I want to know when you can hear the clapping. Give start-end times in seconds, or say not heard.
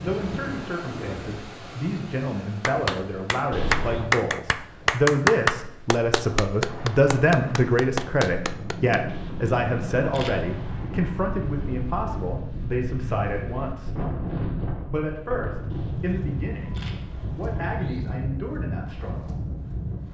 2.6-9.0.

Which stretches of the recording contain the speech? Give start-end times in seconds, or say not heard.
0.0-14.1, 14.9-19.4.